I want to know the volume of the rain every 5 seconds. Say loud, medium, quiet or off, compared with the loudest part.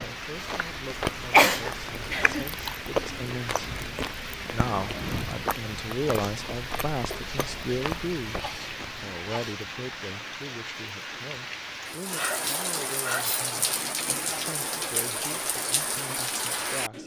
medium, medium, loud, loud.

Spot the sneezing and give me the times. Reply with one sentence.
The sneezing can be heard from 1.3 to 2.5 s, from 8.2 to 9.6 s and from 12.2 to 13.4 s.